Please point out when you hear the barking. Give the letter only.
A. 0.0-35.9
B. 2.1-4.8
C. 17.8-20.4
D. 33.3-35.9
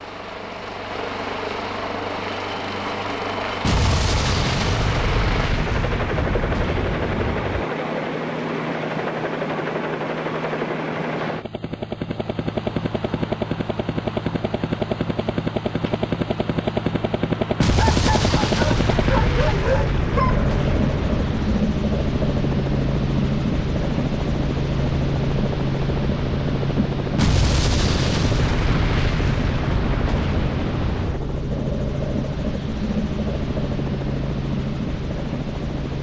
C.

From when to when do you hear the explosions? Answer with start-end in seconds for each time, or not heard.
3.6-7.7, 17.6-21.6, 27.1-31.2.